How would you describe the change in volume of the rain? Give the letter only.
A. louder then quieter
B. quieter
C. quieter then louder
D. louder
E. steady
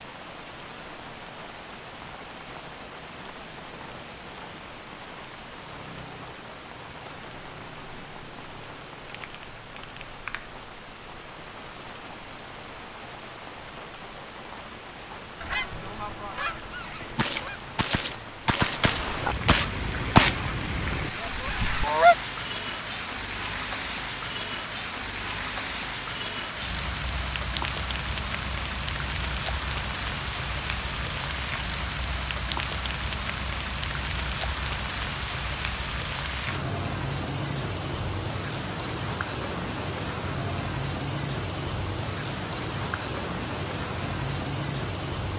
D.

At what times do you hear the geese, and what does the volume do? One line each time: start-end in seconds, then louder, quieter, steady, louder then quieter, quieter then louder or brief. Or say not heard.
15.4-22.1 louder then quieter.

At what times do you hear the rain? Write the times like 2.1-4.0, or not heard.
0.0-45.3.